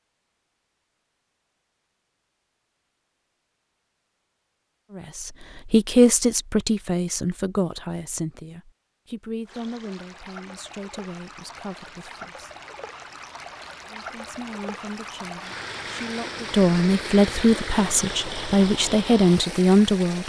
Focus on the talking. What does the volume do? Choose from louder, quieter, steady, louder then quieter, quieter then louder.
quieter then louder.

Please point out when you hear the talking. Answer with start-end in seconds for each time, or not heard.
5.0-12.5, 13.9-20.2.